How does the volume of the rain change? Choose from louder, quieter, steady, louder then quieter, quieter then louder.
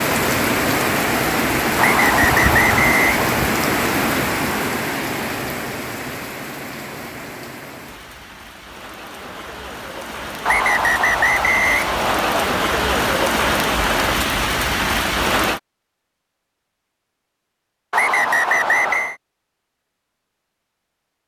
quieter then louder.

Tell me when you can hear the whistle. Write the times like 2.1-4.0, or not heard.
1.8-3.3, 10.4-12.4, 17.9-19.1.